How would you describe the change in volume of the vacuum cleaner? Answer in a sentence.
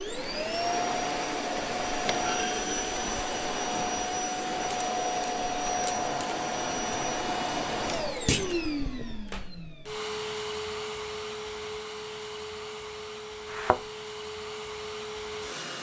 The loudness of the vacuum cleaner goes down.